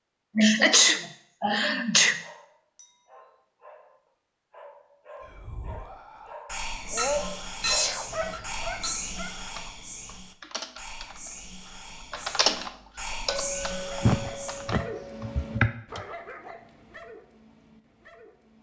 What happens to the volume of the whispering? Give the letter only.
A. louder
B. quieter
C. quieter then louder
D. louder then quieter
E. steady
C.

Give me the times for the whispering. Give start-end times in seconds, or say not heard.
5.2-14.8.